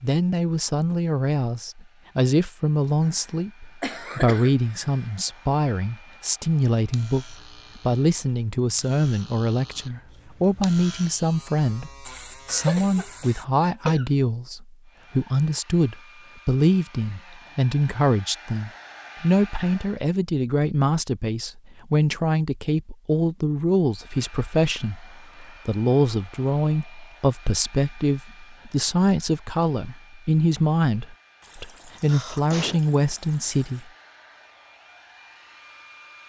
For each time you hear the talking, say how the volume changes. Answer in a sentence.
You can hear the talking from 0.0 to 33.9 s, at a steady volume.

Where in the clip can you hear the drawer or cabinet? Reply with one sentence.
The drawer or cabinet can't be heard in this clip.